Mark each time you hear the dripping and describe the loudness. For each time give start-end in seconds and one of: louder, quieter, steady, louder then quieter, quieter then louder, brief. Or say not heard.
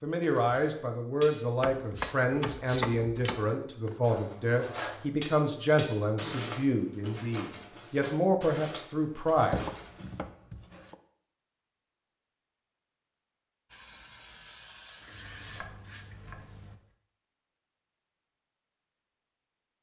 not heard.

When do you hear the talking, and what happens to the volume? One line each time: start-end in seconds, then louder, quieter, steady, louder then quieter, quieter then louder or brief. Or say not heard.
0.0-9.7 steady.